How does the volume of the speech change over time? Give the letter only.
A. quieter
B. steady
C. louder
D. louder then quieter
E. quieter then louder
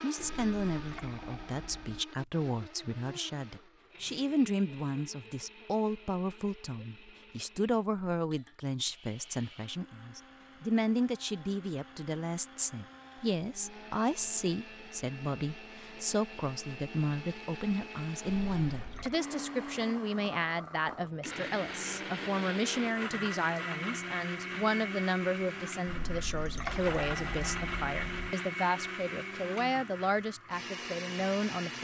B.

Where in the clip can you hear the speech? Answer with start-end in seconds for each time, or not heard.
0.0-31.7.